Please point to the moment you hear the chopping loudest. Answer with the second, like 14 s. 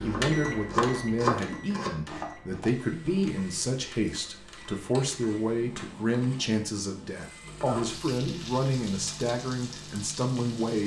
1 s.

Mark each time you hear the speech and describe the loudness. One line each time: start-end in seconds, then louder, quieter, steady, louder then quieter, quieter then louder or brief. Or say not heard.
0.0-10.8 steady.